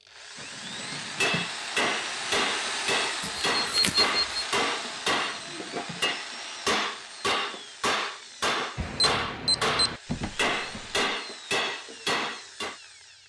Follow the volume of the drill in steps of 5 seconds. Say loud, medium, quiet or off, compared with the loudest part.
loud, medium, medium.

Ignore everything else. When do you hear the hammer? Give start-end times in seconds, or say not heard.
1.2-12.8.